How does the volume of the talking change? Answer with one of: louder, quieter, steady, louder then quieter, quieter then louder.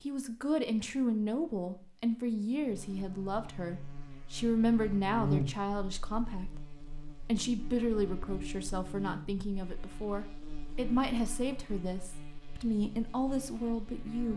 steady.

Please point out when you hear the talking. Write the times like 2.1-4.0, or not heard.
0.0-14.3.